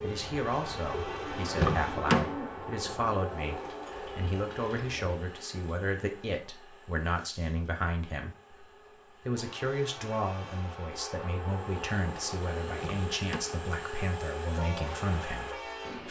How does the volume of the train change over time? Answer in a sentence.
The volume of the train goes down, then up.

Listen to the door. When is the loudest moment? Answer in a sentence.
The volume of the door peaks at 2 seconds.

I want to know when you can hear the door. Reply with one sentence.
You can hear the door from 1.5 to 2.4 s and from 12.7 to 13.4 s.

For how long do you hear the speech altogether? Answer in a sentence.
The speech can be heard for 16 seconds in total.